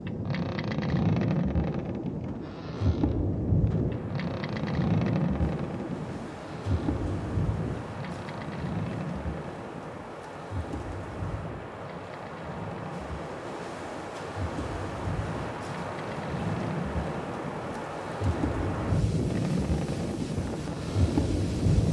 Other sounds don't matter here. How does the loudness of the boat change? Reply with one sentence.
The volume of the boat goes down, then up.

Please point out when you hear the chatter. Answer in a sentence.
You can't hear the chatter here.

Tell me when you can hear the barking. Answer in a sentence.
You can't hear the barking here.